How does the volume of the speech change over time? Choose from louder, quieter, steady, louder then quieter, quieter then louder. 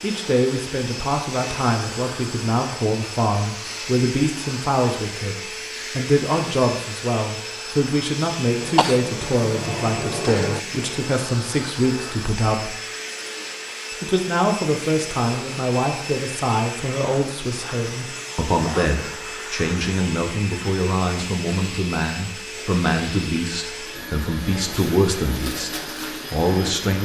steady.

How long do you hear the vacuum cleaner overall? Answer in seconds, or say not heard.
27 s.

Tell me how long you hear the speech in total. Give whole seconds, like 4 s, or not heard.
26 s.